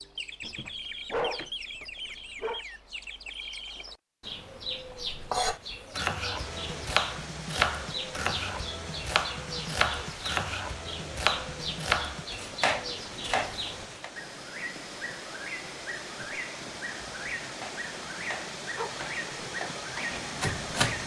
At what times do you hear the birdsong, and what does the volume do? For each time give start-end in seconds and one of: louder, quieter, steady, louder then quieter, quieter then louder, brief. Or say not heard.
0.0-21.0 steady.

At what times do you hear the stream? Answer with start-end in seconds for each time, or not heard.
6.3-21.0.